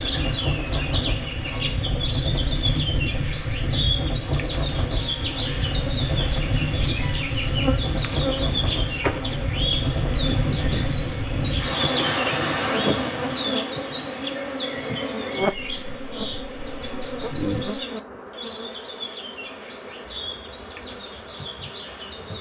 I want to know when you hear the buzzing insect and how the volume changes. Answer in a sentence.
You can hear the buzzing insect from 0.0 to 22.3 s, getting louder then quieter.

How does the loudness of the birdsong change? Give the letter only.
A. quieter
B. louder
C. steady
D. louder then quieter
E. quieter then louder
A.